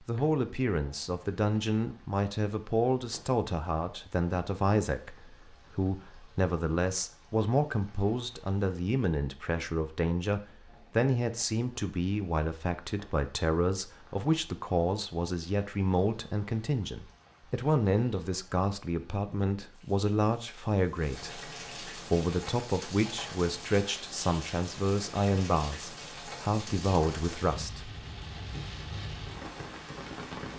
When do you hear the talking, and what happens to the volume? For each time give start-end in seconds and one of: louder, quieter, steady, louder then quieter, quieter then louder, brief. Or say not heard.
0.0-27.9 steady.